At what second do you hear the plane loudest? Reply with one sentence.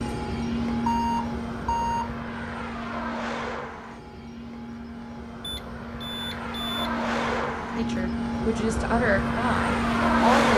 The loudest moment of the plane is at 10 seconds.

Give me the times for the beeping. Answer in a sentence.
The beeping can be heard from 0.8 to 2.1 s and from 5.4 to 6.9 s.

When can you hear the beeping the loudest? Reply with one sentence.
The loudest moment of the beeping is at 1 second.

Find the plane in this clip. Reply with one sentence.
The plane can be heard from 0.0 to 10.5 s.